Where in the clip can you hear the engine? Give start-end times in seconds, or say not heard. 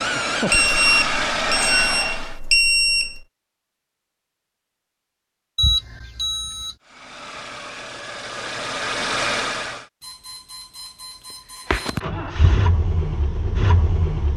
0.0-2.4, 6.8-9.8, 11.7-14.3.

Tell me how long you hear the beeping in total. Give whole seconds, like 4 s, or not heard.
6 s.